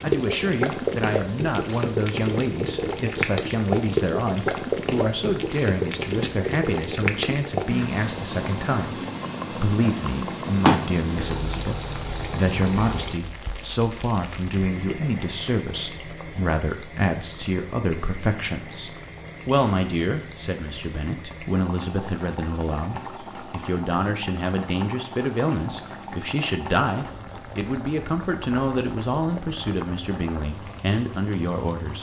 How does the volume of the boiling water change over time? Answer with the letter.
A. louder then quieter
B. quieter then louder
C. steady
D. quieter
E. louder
D.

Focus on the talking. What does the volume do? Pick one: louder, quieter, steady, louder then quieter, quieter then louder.
steady.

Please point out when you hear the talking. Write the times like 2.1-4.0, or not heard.
0.0-31.9.